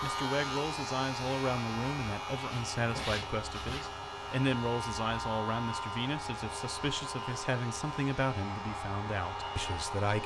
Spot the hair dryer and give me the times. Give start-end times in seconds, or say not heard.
0.0-10.2.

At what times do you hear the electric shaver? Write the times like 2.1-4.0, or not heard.
0.0-10.2.